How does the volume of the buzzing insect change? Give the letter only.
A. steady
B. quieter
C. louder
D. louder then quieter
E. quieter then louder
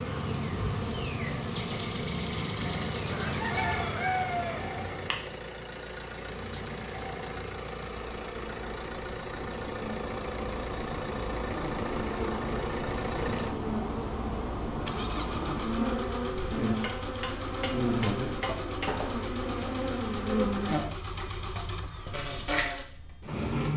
E.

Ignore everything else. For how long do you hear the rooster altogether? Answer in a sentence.
You can hear the rooster for 2 seconds altogether.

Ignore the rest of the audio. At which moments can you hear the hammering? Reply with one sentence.
You can hear the hammering from 16.8 to 18.9 s.